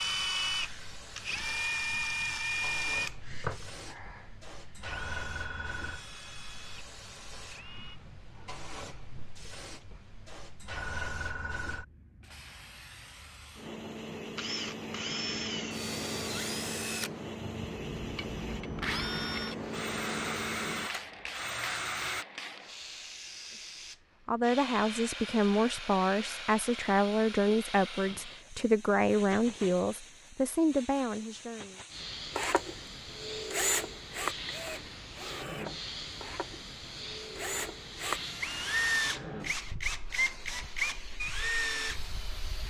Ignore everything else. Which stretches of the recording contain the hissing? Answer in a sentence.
You can hear the hissing from 0.0 to 42.6 s.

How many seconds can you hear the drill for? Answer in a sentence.
You can hear the drill for 26 seconds altogether.